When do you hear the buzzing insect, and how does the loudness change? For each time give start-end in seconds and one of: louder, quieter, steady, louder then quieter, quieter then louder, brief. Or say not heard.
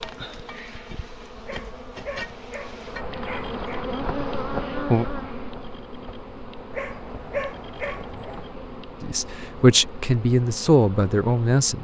0.0-11.7 louder then quieter.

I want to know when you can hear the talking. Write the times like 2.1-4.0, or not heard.
9.0-11.7.